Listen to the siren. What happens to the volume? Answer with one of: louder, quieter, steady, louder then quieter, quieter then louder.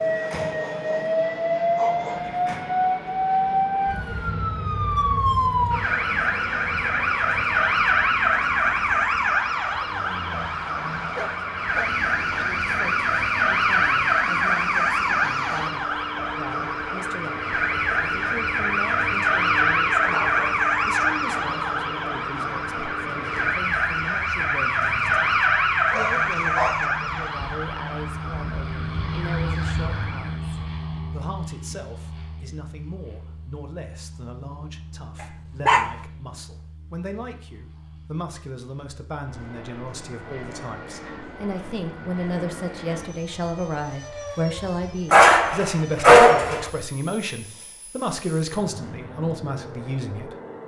steady.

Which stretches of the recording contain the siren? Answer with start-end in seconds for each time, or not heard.
0.0-30.4.